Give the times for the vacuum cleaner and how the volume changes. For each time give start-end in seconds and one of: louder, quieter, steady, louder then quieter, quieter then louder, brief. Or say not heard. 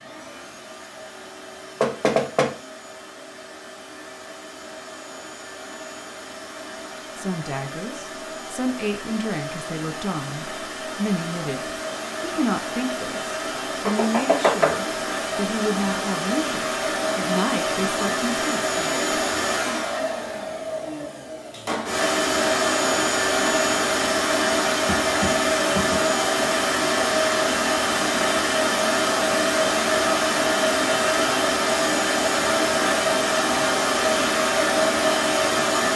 0.0-35.9 louder.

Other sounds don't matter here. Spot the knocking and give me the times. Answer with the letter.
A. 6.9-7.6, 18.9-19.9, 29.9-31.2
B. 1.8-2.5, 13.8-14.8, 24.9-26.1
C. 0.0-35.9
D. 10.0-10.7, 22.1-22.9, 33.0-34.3
B.